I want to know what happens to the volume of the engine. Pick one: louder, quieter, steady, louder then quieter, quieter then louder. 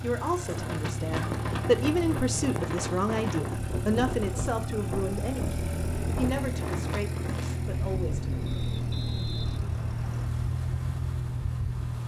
steady.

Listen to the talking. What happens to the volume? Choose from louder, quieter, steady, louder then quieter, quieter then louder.
quieter.